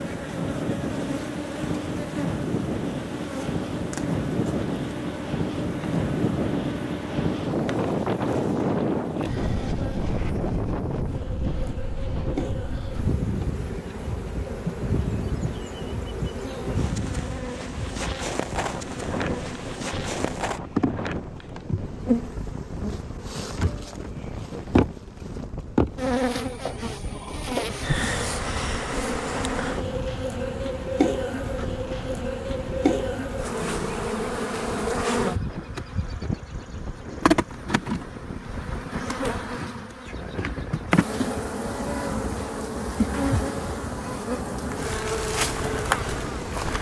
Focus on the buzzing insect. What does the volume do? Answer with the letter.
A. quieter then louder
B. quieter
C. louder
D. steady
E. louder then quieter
C.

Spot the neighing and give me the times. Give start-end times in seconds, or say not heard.
not heard.